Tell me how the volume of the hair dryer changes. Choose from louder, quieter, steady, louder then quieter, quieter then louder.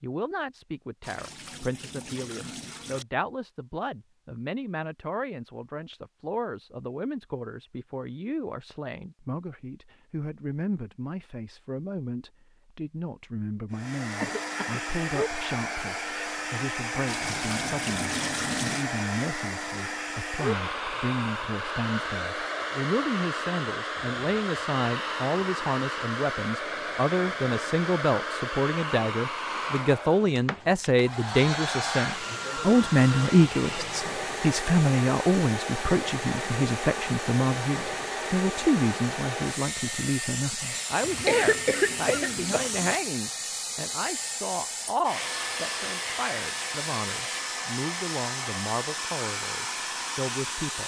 steady.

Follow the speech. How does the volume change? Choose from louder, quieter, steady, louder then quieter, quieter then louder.
louder then quieter.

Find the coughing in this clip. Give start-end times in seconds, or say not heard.
14.2-14.8, 41.0-42.7.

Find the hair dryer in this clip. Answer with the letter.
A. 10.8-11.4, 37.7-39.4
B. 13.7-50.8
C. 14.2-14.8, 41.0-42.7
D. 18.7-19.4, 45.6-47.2
B.